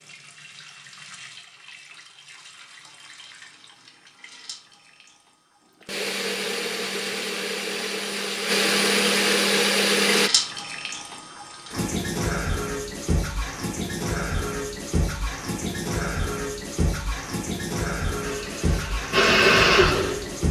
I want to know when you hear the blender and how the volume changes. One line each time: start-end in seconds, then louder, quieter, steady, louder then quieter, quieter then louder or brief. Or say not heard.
5.8-10.3 louder
18.2-20.4 brief.